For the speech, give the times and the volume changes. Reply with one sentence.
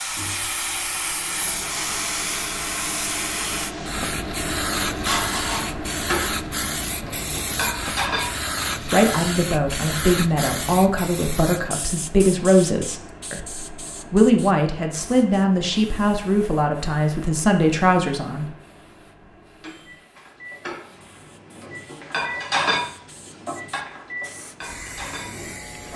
You can hear the speech from 8.8 to 18.4 s, at a steady volume.